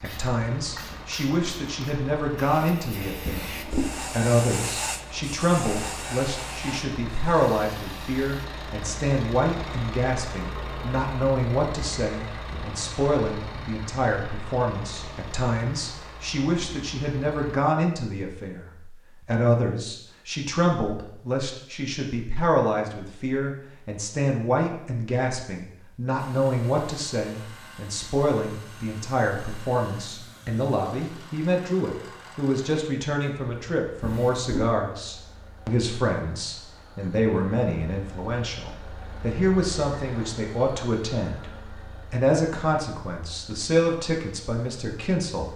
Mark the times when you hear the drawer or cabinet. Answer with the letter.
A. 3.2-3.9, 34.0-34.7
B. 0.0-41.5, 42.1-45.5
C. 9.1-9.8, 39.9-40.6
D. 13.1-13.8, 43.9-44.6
A.